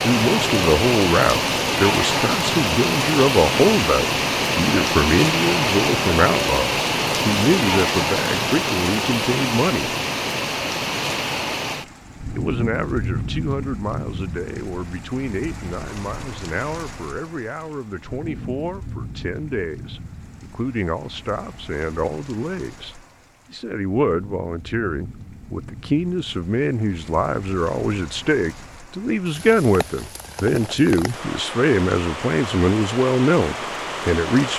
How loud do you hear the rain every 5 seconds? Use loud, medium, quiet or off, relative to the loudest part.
loud, loud, medium, quiet, quiet, quiet, medium.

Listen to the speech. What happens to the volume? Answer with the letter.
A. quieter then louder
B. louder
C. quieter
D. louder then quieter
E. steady
A.